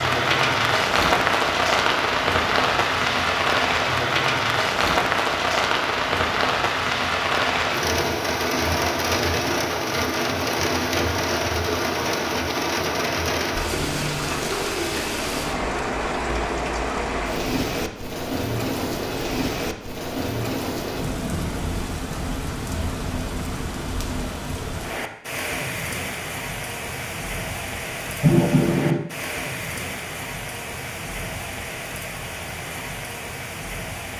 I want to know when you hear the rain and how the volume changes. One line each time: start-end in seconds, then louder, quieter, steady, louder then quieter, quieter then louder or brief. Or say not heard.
0.0-34.1 quieter.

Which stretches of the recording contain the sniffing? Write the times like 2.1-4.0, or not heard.
28.2-29.0.